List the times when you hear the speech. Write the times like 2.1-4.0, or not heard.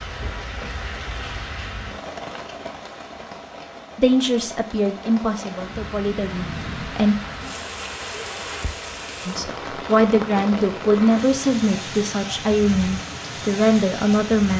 4.0-7.2, 9.2-14.5.